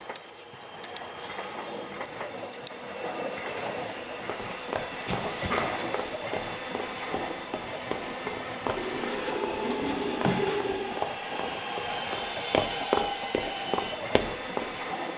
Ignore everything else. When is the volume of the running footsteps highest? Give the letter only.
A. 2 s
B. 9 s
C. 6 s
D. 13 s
D.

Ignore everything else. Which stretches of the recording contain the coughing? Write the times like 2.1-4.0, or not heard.
5.0-5.8, 9.8-10.4.